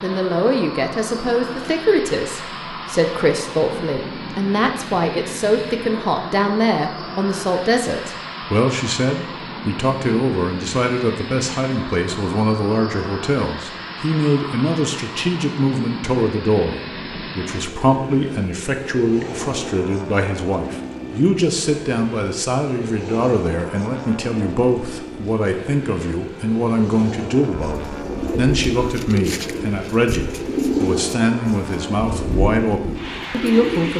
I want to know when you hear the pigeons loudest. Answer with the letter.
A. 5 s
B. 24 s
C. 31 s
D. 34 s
C.